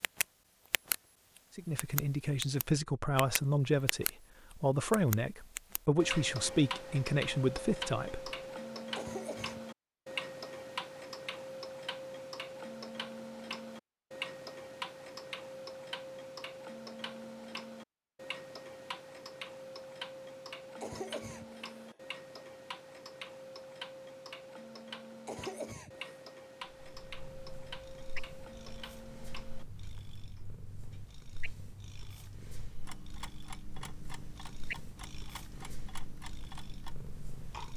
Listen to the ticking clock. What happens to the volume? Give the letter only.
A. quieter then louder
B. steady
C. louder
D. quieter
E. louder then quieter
D.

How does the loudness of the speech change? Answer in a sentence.
The loudness of the speech stays about the same.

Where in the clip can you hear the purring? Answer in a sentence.
The purring can be heard from 26.6 to 37.7 s.